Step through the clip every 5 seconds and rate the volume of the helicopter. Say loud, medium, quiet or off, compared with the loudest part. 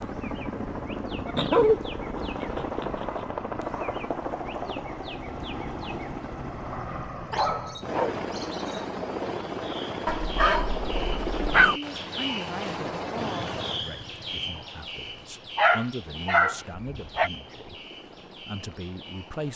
loud, loud, loud, quiet.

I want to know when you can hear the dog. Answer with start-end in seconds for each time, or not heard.
1.2-1.8, 2.4-3.2, 7.3-8.2, 10.1-11.8, 15.6-17.3.